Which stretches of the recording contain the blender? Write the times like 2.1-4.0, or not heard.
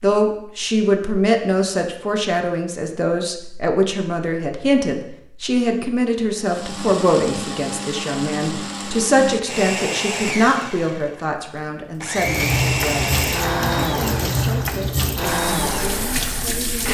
6.3-16.8.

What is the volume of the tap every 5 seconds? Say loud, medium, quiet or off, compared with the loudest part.
off, off, loud, loud.